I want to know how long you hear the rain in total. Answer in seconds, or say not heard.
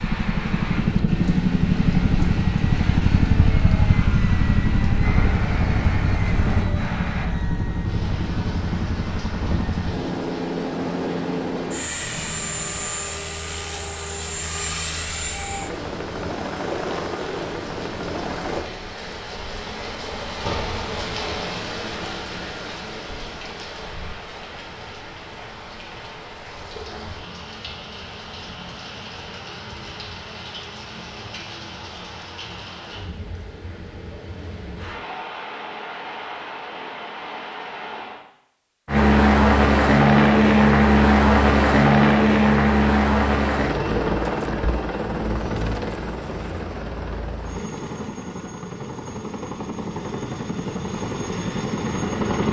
38 s.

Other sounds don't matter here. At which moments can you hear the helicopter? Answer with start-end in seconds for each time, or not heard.
0.0-18.7, 38.9-52.4.